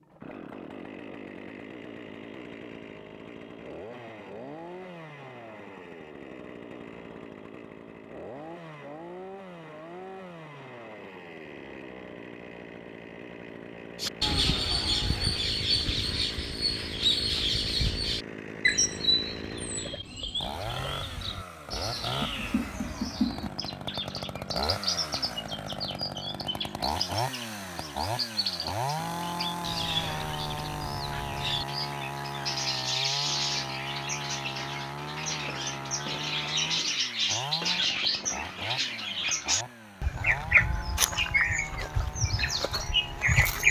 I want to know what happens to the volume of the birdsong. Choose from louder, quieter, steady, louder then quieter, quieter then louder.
quieter then louder.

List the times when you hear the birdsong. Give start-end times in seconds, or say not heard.
14.0-43.6.